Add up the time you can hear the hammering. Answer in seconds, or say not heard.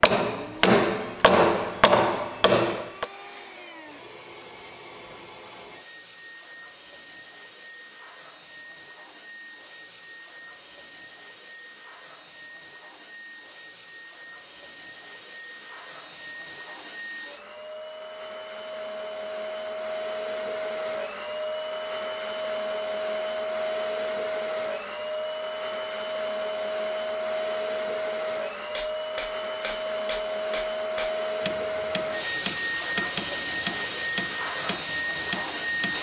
10 s.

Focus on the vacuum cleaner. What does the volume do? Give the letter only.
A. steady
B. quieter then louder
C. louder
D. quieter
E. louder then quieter
C.